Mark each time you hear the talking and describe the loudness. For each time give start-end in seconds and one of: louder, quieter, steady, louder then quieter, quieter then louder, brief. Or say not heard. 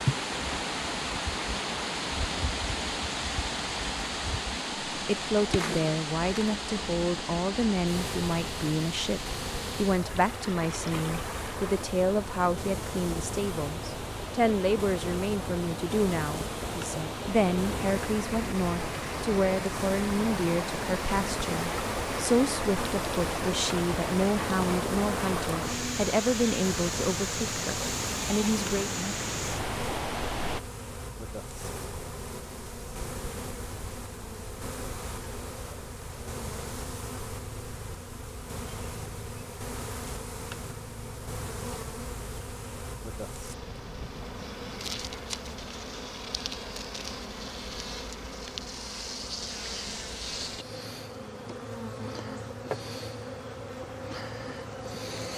5.0-28.9 steady.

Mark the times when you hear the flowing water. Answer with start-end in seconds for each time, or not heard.
0.0-30.6.